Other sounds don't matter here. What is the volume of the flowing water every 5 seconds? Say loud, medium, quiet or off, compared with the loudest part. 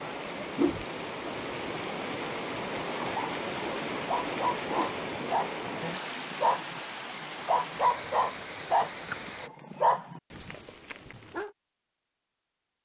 loud, loud, off.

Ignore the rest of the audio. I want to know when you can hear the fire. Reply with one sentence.
The fire can't be heard in this clip.